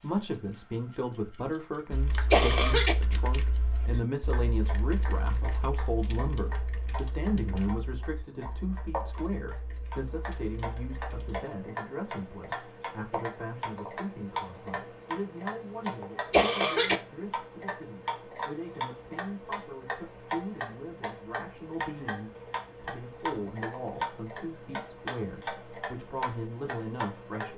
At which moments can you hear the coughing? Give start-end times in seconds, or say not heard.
2.3-3.0, 16.3-17.0.